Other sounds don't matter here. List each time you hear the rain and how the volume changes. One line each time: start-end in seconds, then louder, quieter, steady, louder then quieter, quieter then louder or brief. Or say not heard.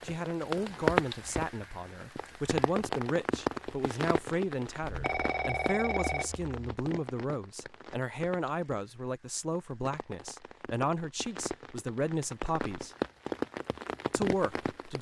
0.0-14.9 quieter then louder.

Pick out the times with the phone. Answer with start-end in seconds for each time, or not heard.
4.8-6.5.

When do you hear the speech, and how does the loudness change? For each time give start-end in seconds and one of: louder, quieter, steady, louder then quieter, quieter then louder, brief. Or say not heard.
0.0-12.9 steady
14.1-14.9 brief.